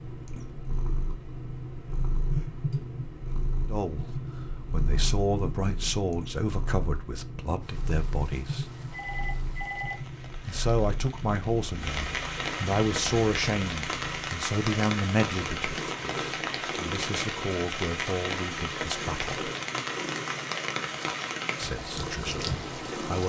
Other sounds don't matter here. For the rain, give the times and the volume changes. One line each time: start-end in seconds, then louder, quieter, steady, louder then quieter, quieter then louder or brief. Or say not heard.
7.6-23.2 louder.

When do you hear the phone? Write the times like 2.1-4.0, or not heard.
8.9-10.7.